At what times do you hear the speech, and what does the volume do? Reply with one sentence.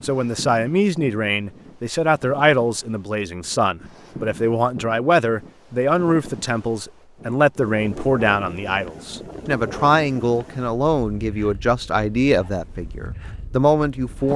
The speech can be heard from 0.0 to 14.3 s, at a steady volume.